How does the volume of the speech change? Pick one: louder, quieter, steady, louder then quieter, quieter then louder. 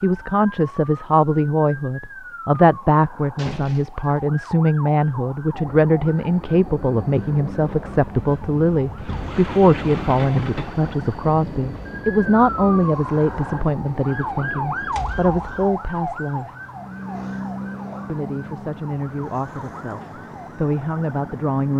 quieter.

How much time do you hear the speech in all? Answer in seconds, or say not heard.
20 s.